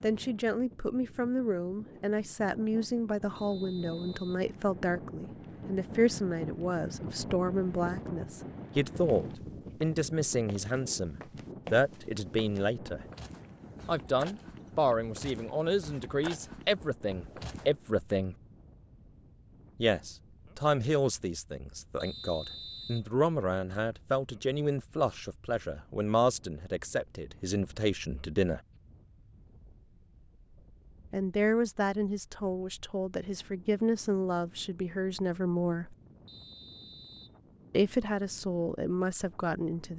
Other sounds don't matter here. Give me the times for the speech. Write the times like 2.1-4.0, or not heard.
0.0-13.1, 13.8-18.4, 19.8-28.6, 31.1-36.0, 37.7-39.9.